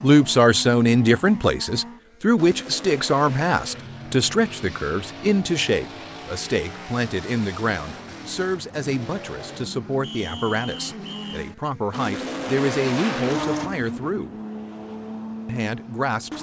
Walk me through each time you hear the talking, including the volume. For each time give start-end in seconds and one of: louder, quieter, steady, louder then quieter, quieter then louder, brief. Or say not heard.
0.0-14.3 quieter
15.4-16.3 brief.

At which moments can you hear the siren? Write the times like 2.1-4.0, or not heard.
not heard.